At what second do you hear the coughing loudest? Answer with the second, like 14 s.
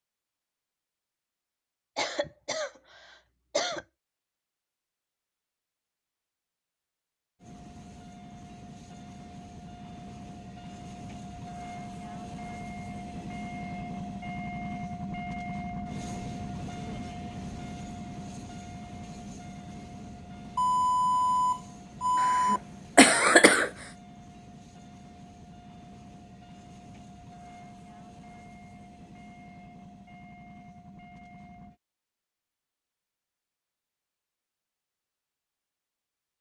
23 s.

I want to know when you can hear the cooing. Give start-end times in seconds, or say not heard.
not heard.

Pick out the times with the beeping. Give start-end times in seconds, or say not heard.
20.6-22.6.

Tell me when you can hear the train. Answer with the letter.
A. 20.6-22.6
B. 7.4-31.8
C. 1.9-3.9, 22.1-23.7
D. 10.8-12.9
B.